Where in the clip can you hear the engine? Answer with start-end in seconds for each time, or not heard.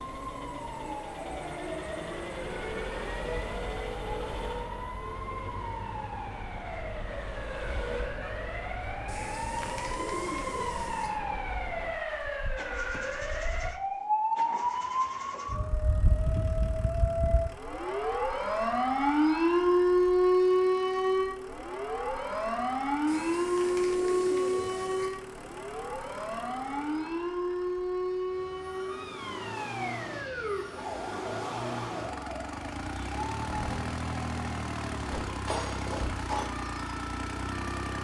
0.0-38.0.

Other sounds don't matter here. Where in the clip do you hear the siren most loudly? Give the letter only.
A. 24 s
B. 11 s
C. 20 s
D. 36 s
C.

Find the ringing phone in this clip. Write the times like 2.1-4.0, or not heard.
35.5-36.5.